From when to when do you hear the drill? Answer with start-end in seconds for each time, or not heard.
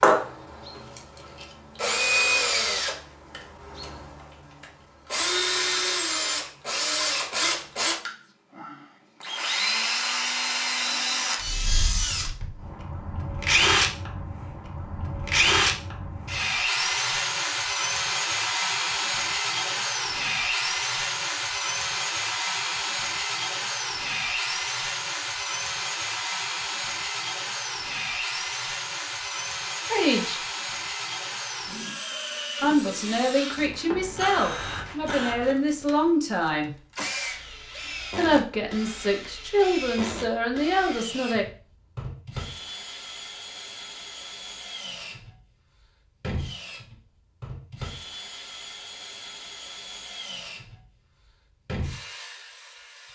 0.0-53.0.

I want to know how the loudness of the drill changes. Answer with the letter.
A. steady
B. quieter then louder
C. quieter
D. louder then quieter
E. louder
C.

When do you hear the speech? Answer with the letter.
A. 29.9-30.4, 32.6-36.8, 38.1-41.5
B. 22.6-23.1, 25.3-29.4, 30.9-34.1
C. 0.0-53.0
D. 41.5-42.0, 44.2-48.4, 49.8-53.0
A.